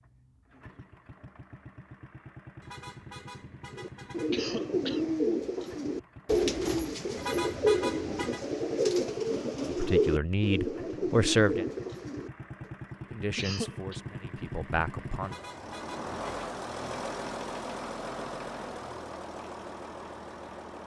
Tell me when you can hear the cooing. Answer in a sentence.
You can hear the cooing from 3.8 to 12.7 s.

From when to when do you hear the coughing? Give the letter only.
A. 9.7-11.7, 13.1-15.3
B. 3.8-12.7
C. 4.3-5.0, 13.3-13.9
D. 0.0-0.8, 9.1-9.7
C.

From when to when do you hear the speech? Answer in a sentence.
You can hear the speech from 9.7 to 11.7 s and from 13.1 to 15.3 s.